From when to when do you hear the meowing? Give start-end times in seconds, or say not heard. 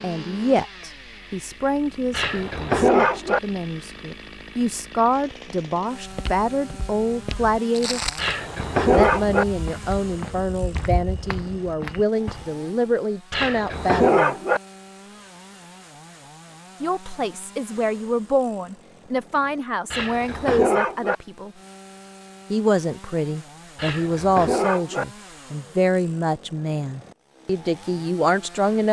not heard.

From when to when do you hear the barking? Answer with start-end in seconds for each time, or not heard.
2.1-3.4, 8.2-9.4, 13.3-14.6, 19.9-21.1, 23.8-25.1.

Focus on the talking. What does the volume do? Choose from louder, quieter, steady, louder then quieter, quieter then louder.
steady.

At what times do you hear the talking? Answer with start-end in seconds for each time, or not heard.
0.0-8.0, 8.9-14.3, 16.8-21.5, 22.5-28.8.